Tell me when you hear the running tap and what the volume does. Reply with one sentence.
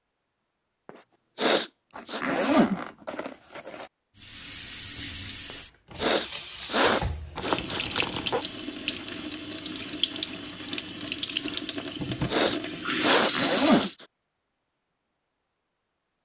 The running tap can be heard from 4.2 to 13.9 s, getting louder.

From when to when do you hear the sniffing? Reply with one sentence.
You can hear the sniffing from 0.8 to 2.2 s, from 5.5 to 7.8 s and from 11.8 to 14.1 s.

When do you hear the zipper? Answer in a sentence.
The zipper can be heard from 1.9 to 3.9 s, from 7.3 to 8.4 s and from 13.3 to 13.9 s.